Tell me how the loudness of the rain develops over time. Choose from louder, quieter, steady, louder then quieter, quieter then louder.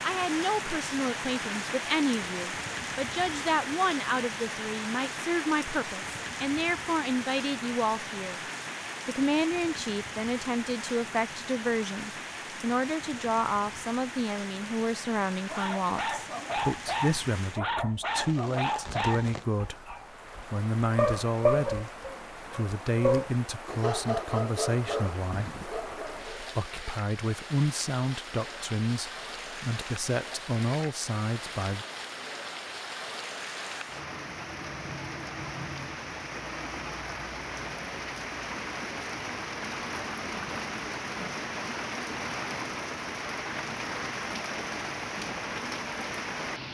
quieter then louder.